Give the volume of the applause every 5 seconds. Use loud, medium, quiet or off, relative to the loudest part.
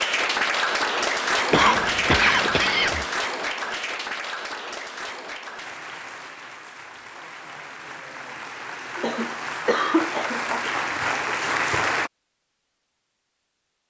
loud, medium, loud.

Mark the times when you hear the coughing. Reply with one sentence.
The coughing can be heard from 1.5 to 3.0 s and from 8.9 to 10.7 s.